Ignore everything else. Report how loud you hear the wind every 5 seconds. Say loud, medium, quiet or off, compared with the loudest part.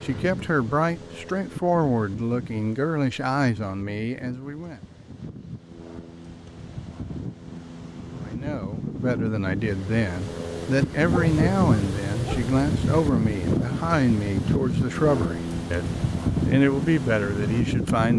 quiet, medium, loud, loud.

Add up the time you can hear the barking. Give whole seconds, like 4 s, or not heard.
2 s.